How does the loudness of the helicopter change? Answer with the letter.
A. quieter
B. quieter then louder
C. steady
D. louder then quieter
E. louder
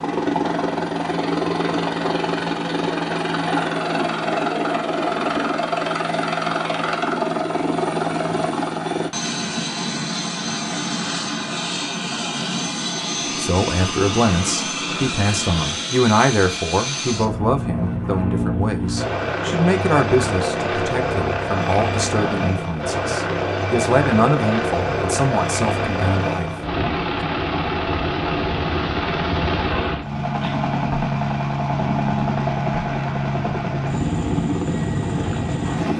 C.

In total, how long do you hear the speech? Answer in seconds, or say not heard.
13 s.